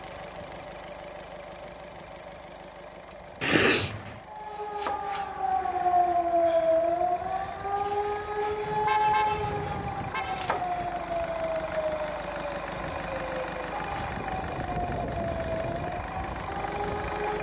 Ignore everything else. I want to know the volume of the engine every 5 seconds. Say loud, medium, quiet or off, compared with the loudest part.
medium, medium, loud, loud.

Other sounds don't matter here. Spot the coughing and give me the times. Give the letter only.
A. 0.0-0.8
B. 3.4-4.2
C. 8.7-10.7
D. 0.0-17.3
B.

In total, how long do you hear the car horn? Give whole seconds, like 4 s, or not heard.
2 s.